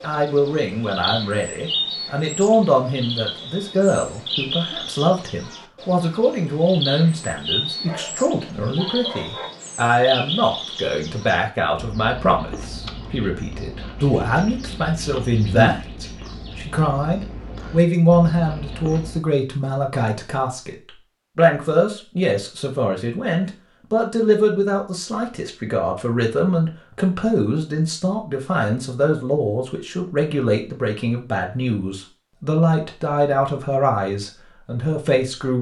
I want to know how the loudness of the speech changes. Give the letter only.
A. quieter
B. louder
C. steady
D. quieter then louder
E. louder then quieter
C.